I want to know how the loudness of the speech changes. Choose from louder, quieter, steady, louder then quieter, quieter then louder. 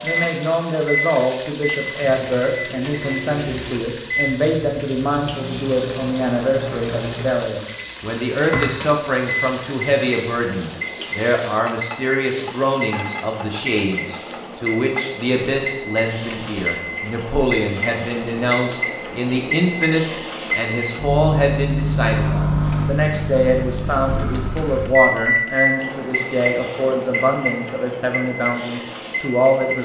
steady.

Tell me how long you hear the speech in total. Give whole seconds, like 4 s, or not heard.
30 s.